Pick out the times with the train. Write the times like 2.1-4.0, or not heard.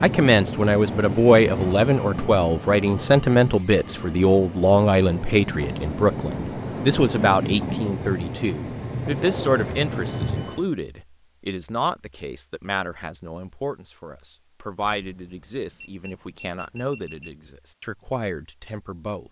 0.0-10.7.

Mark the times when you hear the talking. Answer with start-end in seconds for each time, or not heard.
0.0-19.2.